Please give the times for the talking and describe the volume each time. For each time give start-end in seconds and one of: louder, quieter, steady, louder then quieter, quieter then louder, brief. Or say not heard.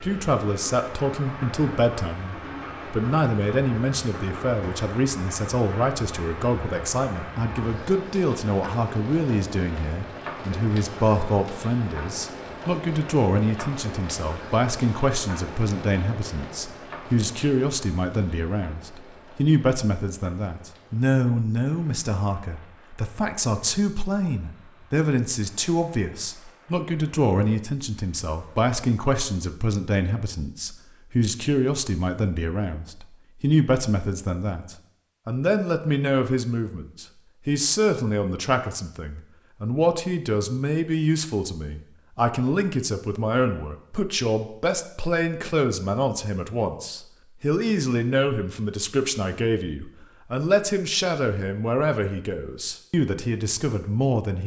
0.0-54.4 steady.